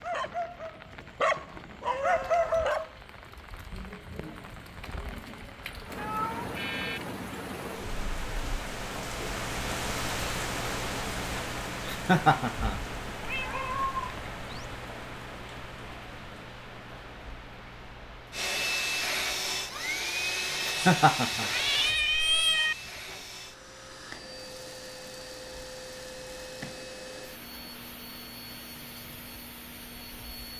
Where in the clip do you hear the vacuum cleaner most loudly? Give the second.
19 s.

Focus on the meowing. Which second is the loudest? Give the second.
22 s.